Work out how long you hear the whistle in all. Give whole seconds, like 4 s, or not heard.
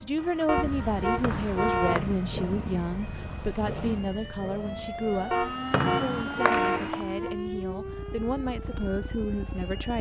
2 s.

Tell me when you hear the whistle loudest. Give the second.
6 s.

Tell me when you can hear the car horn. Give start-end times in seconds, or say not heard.
0.5-2.1, 5.3-7.3.